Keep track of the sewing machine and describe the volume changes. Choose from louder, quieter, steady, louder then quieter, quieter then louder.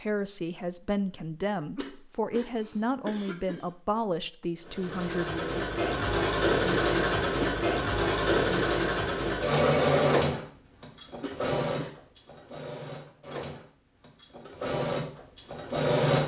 quieter.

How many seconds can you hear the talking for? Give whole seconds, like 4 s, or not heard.
6 s.